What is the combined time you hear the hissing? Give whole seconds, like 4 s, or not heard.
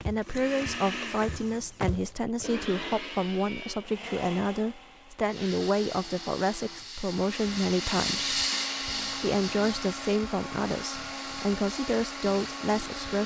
8 s.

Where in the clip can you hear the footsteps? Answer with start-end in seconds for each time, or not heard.
0.0-2.5.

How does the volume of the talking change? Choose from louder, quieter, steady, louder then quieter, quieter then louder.
steady.